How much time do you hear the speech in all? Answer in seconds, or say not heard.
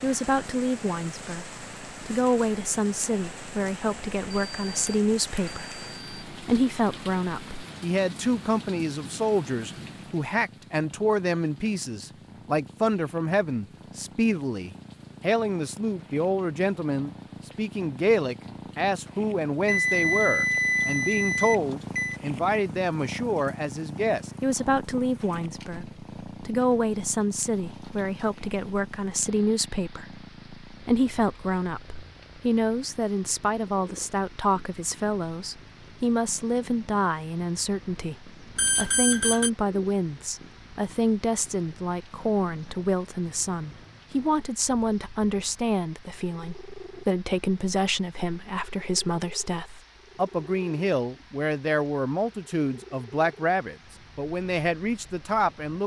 56 s.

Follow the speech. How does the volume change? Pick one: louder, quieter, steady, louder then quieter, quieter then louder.
steady.